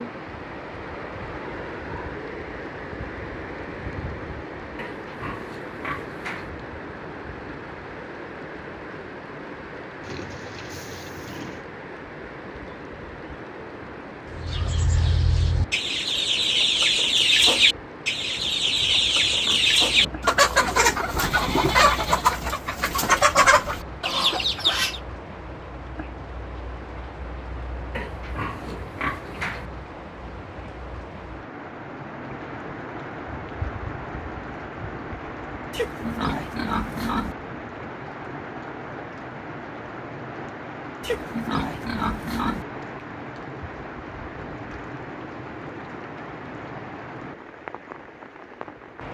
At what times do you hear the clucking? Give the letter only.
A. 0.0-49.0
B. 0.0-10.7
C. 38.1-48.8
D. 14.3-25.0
D.